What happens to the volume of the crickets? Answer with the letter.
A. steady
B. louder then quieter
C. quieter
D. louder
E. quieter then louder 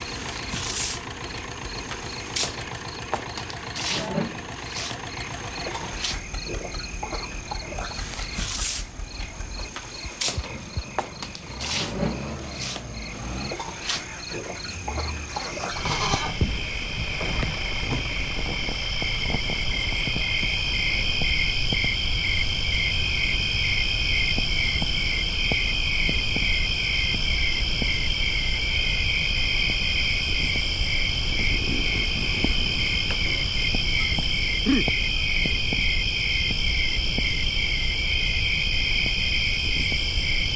D.